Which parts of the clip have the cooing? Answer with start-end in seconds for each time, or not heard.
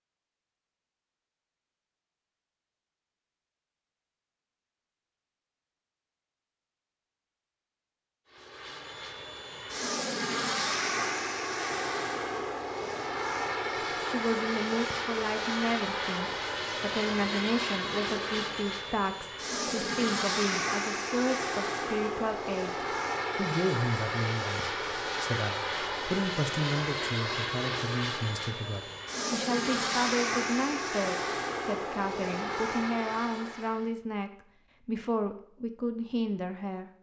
not heard.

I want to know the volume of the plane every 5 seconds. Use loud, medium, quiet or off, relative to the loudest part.
off, medium, loud, loud, loud, loud, loud, off.